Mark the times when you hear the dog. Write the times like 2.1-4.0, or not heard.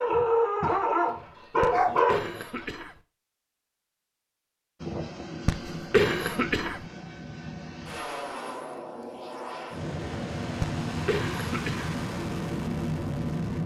0.0-2.6.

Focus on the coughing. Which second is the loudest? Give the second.
6 s.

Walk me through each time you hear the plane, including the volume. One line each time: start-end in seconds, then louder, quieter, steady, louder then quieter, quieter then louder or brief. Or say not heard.
4.8-13.6 louder.